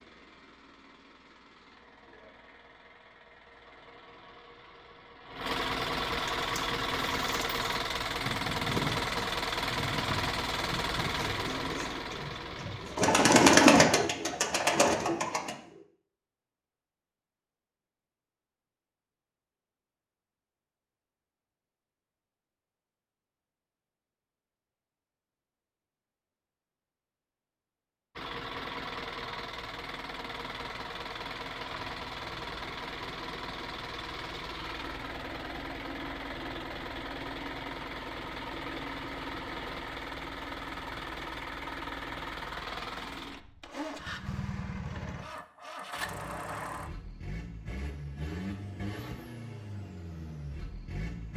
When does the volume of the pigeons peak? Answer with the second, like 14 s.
14 s.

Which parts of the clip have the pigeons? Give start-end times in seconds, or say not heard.
6.3-15.8.